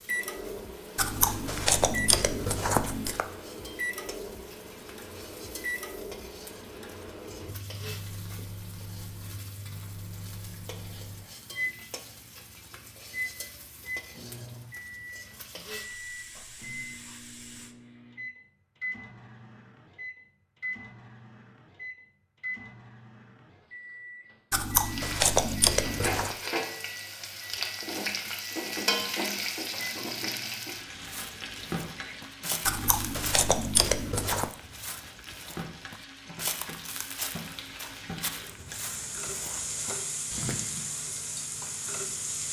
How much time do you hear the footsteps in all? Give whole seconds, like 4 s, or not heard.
10 s.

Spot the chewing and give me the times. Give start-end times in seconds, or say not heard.
0.9-3.2, 24.5-26.4, 32.6-34.5.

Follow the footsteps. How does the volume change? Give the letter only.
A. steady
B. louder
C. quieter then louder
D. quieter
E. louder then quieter
A.